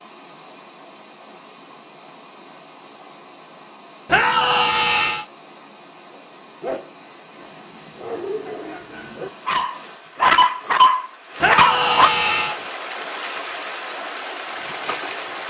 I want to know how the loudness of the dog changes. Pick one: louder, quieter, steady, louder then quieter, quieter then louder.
louder.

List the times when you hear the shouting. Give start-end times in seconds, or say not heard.
4.0-5.2, 11.4-12.6.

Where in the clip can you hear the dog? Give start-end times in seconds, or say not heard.
6.1-12.1.